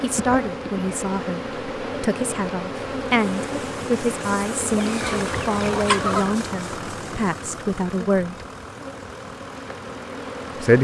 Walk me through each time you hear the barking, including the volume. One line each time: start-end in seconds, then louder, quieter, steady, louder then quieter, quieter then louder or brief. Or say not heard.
not heard.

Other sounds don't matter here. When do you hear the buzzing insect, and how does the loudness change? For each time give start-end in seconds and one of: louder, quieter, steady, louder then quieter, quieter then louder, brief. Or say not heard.
0.0-10.7 quieter.